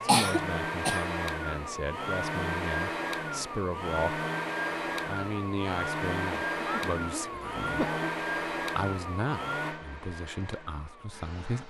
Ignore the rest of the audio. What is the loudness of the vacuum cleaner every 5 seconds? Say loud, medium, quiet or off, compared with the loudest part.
loud, loud, quiet.